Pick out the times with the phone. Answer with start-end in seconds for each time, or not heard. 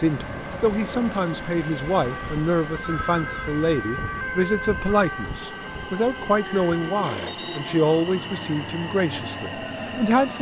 2.8-3.5, 6.5-7.4.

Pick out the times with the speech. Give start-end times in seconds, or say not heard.
0.0-10.3.